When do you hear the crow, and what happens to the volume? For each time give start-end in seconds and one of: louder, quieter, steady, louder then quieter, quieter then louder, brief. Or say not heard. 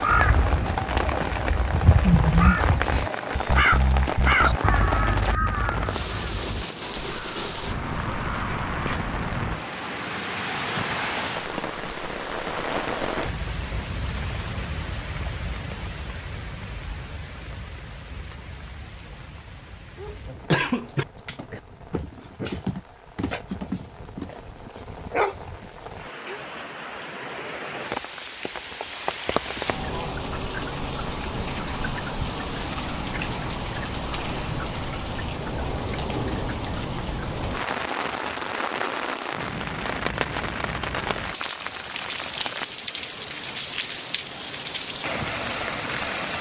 0.0-8.9 louder then quieter.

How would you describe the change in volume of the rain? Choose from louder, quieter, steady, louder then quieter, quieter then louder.
quieter then louder.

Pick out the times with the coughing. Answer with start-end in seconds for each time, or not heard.
20.1-21.1.